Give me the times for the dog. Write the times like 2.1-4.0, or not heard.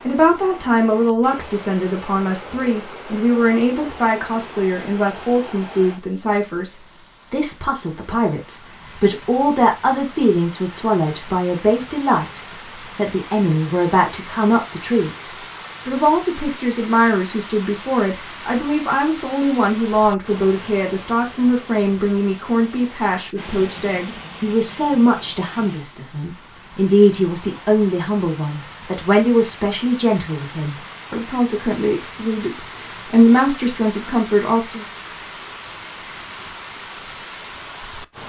not heard.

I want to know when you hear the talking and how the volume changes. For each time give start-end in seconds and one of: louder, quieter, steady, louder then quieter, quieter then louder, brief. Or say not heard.
0.0-34.9 steady.